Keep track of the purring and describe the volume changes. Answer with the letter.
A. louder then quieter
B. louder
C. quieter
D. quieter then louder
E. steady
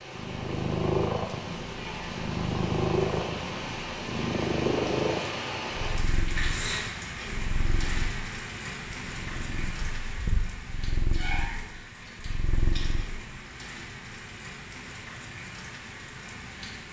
C.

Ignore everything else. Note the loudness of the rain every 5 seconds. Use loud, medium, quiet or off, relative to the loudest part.
loud, loud, medium, medium.